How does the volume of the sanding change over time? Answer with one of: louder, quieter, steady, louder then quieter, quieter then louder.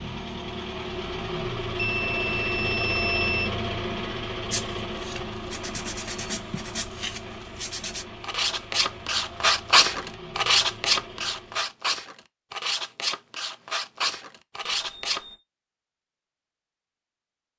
louder then quieter.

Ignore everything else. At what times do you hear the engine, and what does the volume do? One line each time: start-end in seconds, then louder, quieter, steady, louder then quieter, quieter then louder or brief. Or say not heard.
0.0-11.8 quieter.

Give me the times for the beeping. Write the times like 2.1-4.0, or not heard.
1.8-3.5, 14.7-15.4.